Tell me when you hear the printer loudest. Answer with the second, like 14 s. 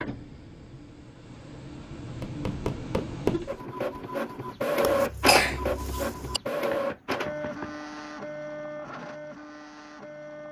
5 s.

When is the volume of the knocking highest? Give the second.
3 s.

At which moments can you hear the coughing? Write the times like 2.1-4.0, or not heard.
4.8-6.4.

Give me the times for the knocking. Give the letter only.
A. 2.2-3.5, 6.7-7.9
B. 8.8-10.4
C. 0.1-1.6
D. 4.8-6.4
A.